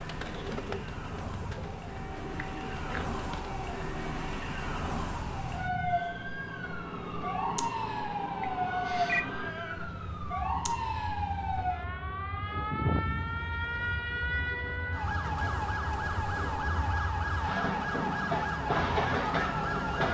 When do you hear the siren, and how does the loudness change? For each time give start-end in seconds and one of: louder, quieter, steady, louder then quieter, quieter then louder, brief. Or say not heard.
0.0-20.0 louder.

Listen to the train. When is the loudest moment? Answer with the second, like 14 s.
19 s.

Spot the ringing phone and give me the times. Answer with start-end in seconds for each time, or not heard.
8.4-9.2.